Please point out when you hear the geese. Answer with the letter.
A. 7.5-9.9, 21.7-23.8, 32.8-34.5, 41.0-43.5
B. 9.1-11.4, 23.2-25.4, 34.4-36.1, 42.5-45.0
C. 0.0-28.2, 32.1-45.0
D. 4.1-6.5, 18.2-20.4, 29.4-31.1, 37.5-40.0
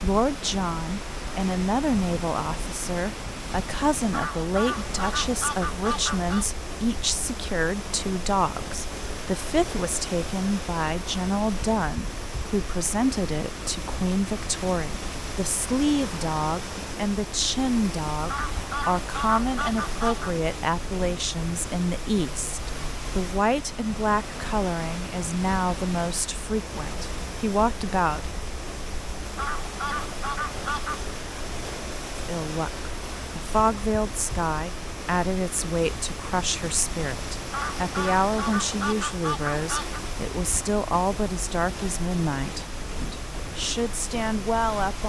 D.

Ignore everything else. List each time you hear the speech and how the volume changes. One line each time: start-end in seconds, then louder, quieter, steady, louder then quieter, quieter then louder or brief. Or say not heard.
0.0-28.2 steady
32.1-45.0 steady.